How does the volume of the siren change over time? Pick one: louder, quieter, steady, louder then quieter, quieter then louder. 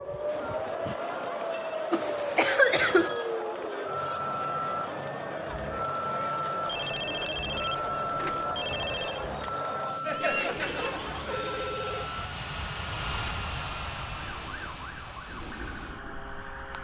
quieter.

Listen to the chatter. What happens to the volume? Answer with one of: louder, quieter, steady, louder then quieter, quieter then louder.
steady.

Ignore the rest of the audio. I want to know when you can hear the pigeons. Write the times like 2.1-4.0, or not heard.
not heard.